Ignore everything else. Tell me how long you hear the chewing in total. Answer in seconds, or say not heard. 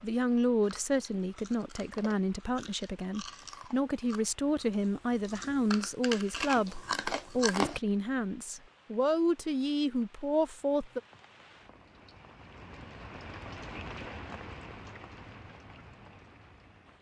7 s.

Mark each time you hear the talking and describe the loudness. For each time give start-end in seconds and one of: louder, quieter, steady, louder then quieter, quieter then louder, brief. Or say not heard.
0.0-11.0 steady.